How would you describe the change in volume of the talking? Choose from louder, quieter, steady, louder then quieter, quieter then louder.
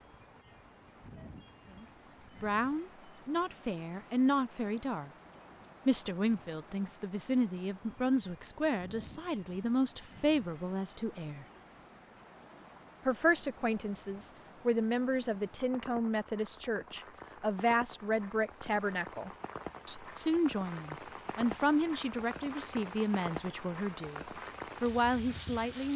steady.